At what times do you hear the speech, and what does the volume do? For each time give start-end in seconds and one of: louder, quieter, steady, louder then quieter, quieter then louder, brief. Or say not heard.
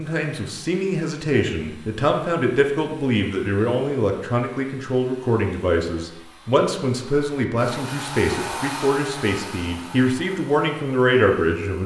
0.0-11.8 steady.